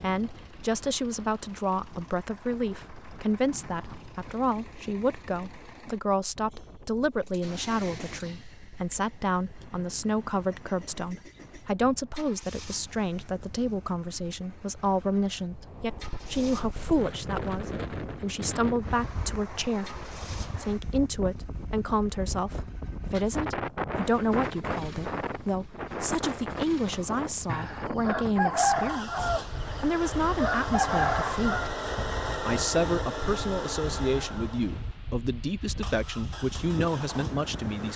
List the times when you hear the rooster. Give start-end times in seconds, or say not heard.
27.4-31.7.